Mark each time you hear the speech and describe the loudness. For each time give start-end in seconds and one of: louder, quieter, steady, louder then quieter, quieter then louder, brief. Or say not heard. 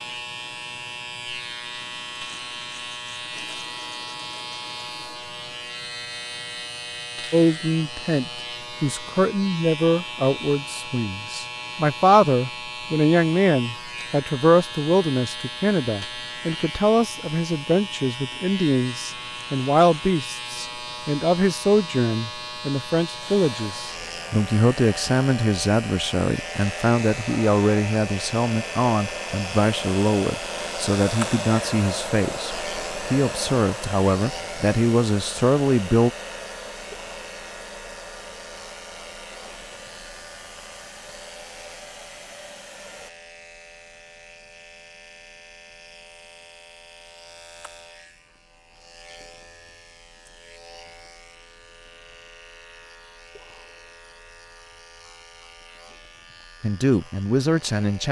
7.3-36.1 steady
56.6-58.0 brief.